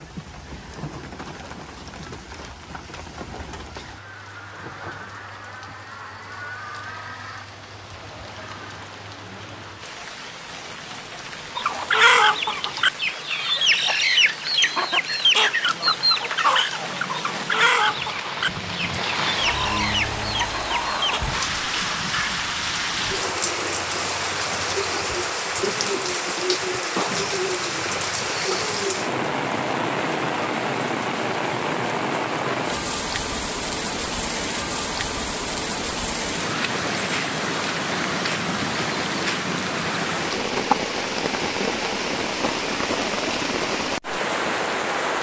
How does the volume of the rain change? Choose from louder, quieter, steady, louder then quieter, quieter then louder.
louder.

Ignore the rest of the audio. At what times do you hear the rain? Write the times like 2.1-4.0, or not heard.
0.0-45.1.